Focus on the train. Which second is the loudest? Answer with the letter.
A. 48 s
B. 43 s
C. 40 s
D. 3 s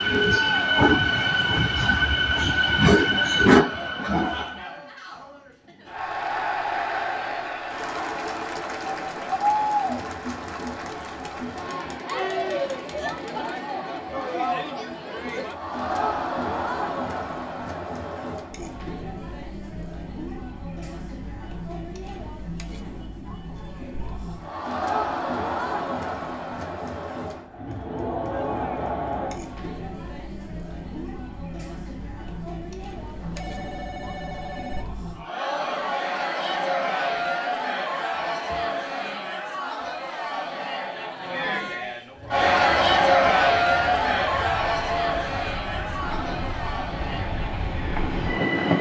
D.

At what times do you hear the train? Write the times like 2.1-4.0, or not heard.
0.0-4.7, 42.1-48.7.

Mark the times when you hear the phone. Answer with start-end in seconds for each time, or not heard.
33.0-34.9.